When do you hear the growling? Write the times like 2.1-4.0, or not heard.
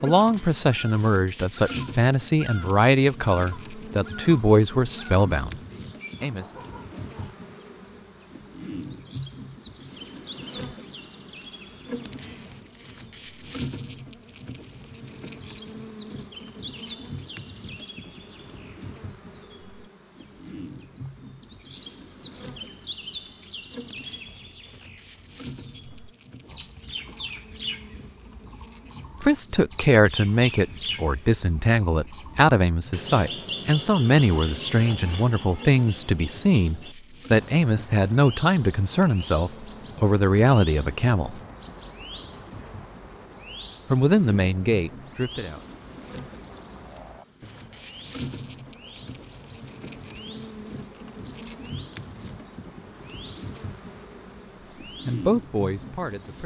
46.5-47.6.